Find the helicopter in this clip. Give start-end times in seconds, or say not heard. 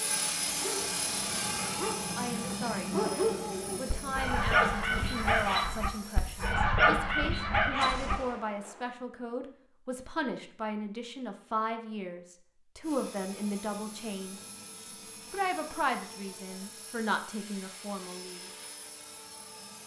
0.0-6.5, 12.8-19.8.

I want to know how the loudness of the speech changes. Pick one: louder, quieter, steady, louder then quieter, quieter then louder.
steady.